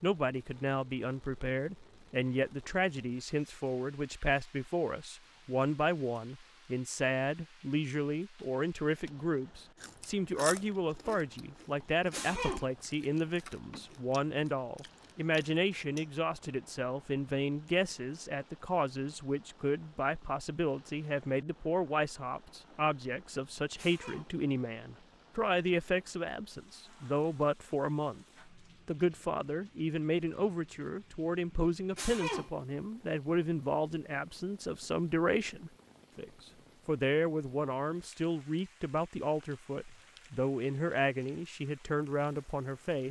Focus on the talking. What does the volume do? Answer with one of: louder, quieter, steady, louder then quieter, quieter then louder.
steady.